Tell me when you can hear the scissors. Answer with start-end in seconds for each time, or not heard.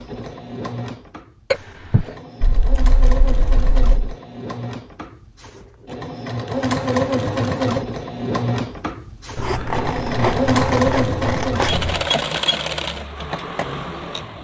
2.4-4.2, 9.3-12.1.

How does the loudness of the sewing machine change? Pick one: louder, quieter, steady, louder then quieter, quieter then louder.
louder.